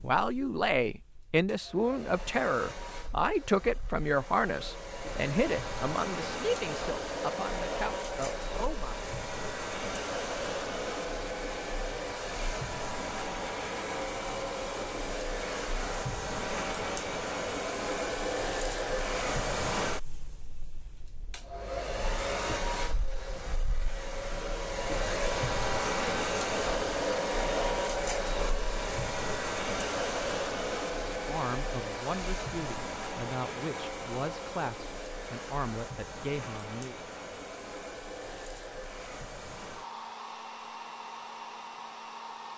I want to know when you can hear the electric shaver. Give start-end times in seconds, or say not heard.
not heard.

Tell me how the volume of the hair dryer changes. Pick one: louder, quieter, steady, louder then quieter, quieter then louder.
louder then quieter.